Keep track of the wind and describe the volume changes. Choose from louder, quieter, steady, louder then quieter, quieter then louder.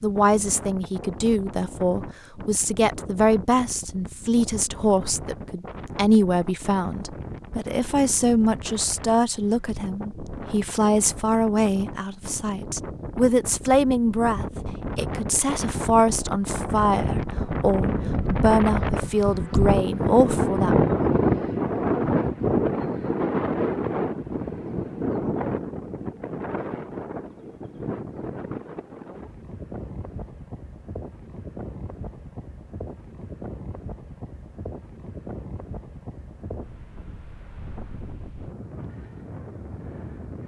louder then quieter.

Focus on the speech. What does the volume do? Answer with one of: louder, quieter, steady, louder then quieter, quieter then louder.
steady.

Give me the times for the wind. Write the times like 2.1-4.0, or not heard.
0.0-40.4.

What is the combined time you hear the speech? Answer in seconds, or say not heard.
21 s.